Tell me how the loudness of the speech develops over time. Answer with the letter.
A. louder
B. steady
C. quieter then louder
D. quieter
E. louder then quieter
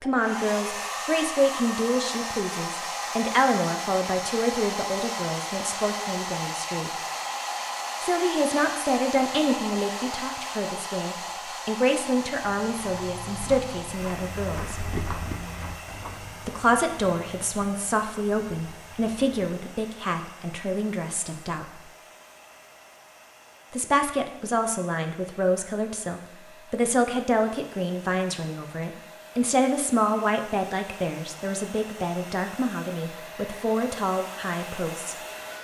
B.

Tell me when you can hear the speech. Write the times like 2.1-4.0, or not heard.
0.0-6.9, 8.0-14.8, 16.4-21.8, 23.7-35.1.